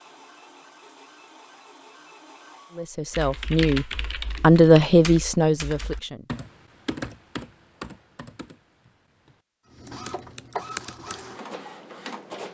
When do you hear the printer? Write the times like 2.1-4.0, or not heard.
0.0-2.9, 9.7-12.4.